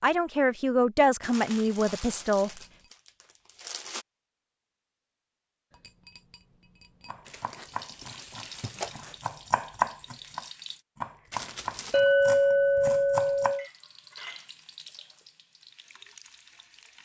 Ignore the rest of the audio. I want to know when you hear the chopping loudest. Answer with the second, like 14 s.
10 s.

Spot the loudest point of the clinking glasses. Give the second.
12 s.